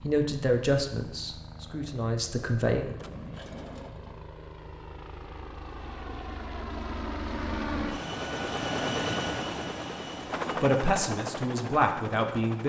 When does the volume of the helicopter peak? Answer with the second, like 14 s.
9 s.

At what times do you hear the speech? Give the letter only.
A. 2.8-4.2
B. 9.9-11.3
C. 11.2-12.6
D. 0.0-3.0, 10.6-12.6
D.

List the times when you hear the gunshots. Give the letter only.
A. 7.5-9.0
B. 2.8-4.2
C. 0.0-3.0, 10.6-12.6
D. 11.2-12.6
B.